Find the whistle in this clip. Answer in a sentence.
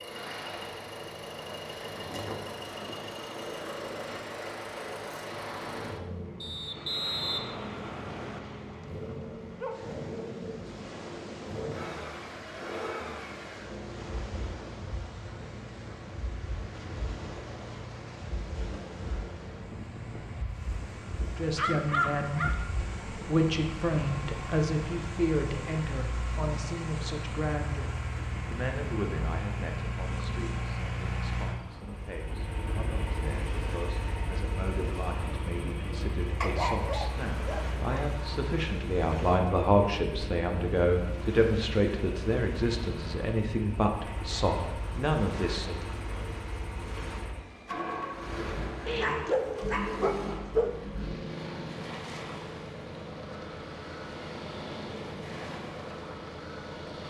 You can hear the whistle from 6.4 to 8.4 s.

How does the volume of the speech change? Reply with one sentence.
The loudness of the speech goes down, then up.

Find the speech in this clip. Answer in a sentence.
You can hear the speech from 21.4 to 45.8 s.